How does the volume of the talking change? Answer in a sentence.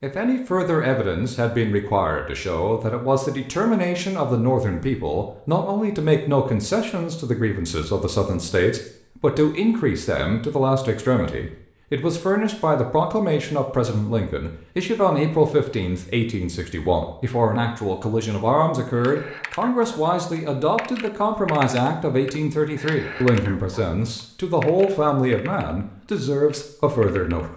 The volume of the talking stays about the same.